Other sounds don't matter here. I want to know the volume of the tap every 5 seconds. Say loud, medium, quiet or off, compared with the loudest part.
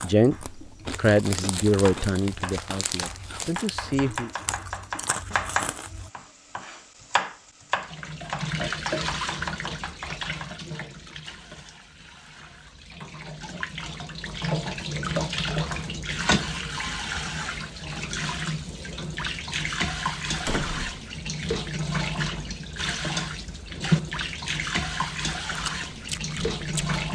off, loud, medium, loud, loud, loud.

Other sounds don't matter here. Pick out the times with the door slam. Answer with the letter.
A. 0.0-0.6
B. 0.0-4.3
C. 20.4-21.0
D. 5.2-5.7
C.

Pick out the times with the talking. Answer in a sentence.
The talking can be heard from 0.0 to 4.3 s.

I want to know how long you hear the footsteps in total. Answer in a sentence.
The footsteps can't be heard in this clip.